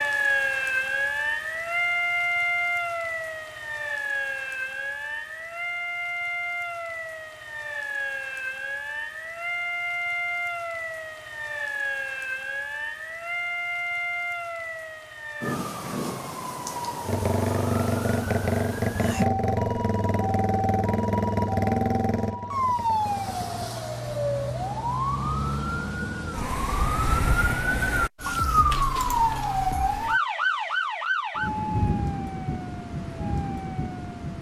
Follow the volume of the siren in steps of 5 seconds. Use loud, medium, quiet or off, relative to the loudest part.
loud, medium, medium, medium, loud, loud, loud.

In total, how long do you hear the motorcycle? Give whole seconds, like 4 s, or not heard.
7 s.